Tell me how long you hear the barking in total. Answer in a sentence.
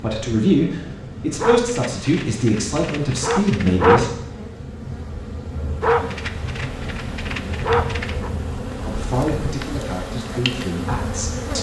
You can hear the barking for 5 seconds altogether.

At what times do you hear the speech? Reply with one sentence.
The speech can be heard from 0.0 to 4.1 s and from 8.8 to 11.5 s.